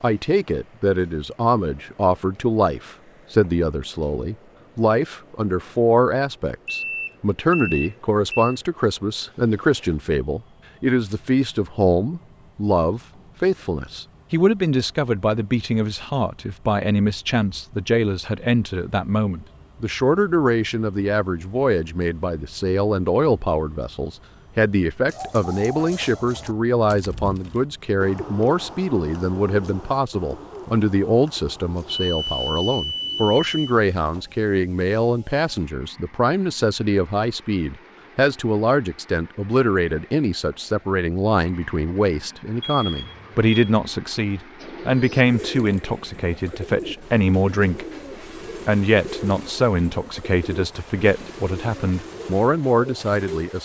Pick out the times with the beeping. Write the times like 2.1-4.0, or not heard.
6.7-8.6, 31.9-33.8, 42.6-43.5.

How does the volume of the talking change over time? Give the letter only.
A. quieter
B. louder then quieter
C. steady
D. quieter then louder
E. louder
C.